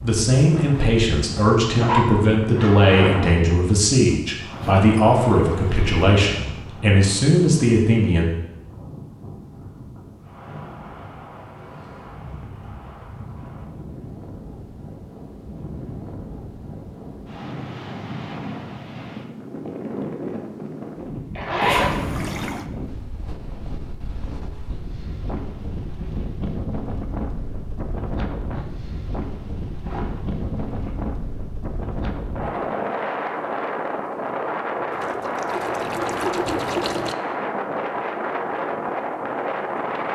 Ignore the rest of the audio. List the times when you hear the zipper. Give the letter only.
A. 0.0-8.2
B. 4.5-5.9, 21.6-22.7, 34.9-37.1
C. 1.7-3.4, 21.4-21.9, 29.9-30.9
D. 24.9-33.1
C.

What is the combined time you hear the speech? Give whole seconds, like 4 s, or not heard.
8 s.